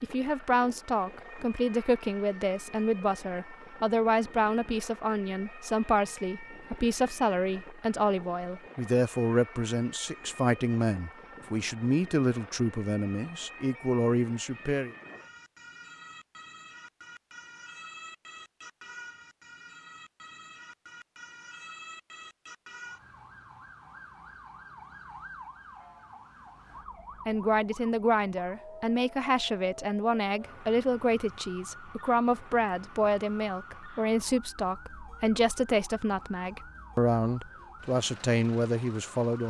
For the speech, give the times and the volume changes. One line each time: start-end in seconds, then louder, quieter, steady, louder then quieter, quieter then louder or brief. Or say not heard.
0.0-14.9 steady
27.2-39.4 steady.